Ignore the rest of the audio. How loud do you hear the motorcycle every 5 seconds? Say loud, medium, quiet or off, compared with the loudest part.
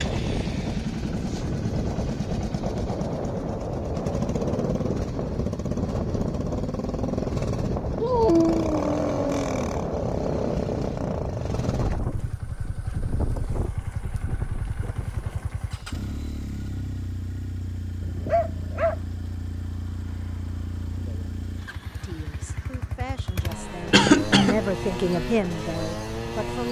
loud, loud, loud, medium, medium, loud.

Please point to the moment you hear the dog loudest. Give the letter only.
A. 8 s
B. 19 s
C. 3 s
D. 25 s
A.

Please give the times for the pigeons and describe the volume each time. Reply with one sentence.
The pigeons can't be heard in this clip.